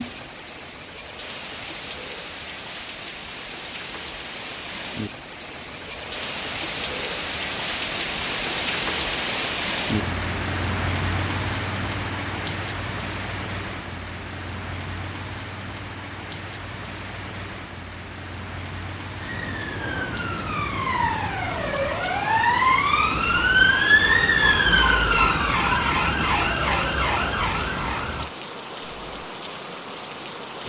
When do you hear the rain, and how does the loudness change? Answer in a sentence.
You can hear the rain from 0.0 to 30.6 s, getting louder then quieter.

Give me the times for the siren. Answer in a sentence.
You can hear the siren from 19.2 to 28.3 s.